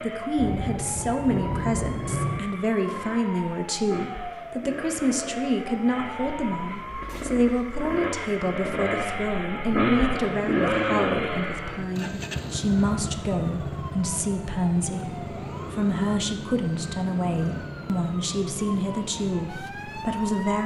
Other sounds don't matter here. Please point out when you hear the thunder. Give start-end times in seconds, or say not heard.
0.3-2.4.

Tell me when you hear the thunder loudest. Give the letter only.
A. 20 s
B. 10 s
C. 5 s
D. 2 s
D.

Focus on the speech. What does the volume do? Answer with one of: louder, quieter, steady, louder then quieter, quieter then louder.
steady.